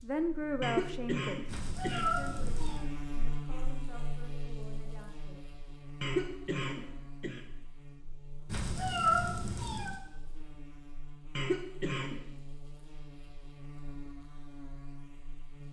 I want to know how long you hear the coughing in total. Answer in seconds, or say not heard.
4 s.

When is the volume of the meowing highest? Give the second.
9 s.